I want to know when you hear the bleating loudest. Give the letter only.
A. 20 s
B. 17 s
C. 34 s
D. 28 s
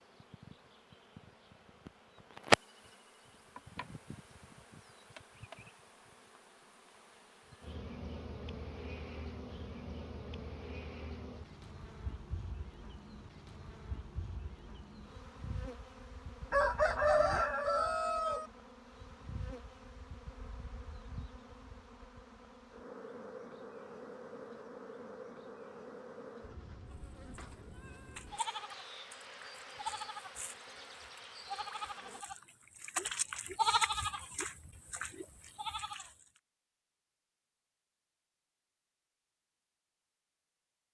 C.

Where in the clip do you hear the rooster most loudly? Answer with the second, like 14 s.
17 s.